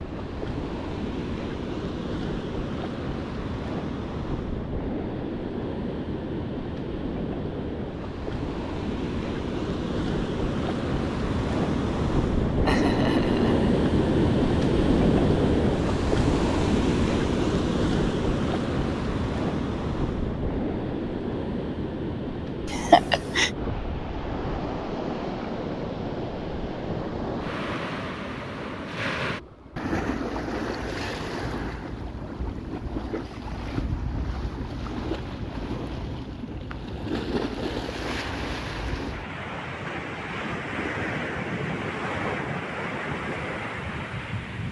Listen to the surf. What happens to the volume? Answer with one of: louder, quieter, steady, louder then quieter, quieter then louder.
louder then quieter.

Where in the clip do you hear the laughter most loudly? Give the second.
23 s.